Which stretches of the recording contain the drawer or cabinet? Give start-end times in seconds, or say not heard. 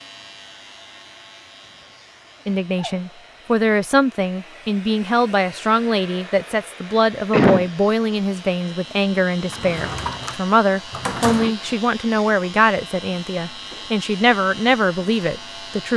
9.5-11.5.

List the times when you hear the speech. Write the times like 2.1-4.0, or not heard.
2.5-15.9.